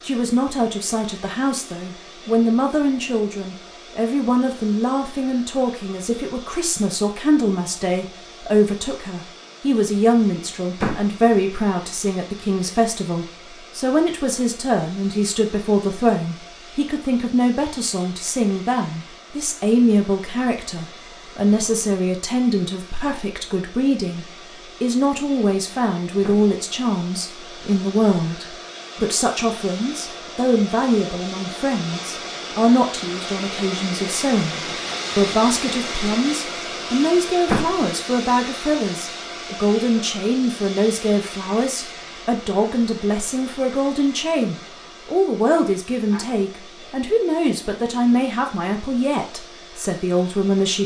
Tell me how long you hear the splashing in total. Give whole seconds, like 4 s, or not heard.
not heard.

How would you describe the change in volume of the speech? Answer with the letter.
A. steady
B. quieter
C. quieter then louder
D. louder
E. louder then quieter
A.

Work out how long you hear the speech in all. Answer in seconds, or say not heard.
51 s.